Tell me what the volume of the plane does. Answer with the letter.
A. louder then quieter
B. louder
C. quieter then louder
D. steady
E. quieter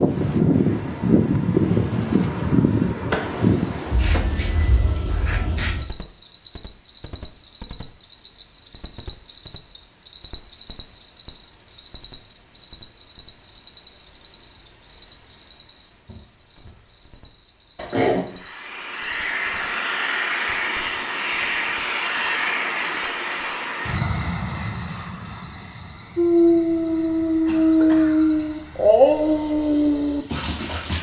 E.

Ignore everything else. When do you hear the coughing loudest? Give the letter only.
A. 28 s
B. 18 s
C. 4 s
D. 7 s
B.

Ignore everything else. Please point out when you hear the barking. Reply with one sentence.
You can hear the barking from 26.1 to 30.9 s.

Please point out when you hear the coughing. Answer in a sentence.
The coughing can be heard from 3.1 to 4.2 s, from 17.8 to 18.3 s and from 27.4 to 28.4 s.